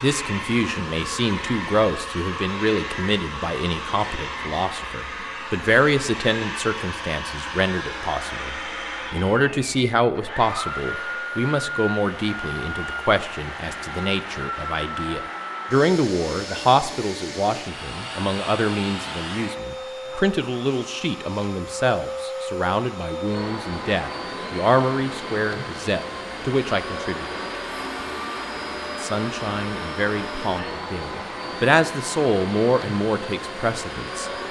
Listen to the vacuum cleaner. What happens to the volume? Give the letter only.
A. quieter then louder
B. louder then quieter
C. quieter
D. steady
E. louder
D.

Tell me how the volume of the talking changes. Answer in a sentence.
The volume of the talking stays about the same.